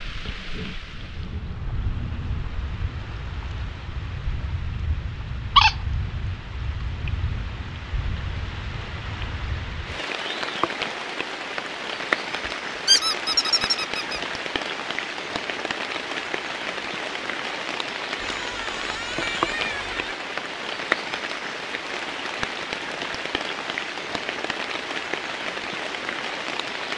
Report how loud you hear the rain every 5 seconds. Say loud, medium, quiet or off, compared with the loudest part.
medium, medium, loud, loud, loud, loud.